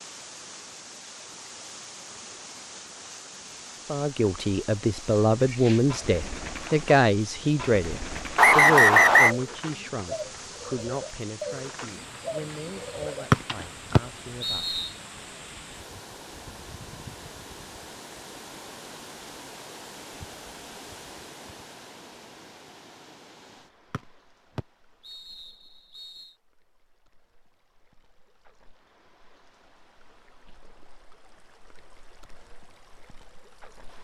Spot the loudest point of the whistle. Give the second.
9 s.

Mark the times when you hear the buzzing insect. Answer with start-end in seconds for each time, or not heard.
not heard.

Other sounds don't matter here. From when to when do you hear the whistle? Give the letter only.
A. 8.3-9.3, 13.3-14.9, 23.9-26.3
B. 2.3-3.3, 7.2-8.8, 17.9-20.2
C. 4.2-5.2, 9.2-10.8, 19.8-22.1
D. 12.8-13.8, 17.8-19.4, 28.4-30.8
A.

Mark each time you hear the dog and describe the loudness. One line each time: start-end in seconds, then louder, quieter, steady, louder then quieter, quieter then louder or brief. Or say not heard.
not heard.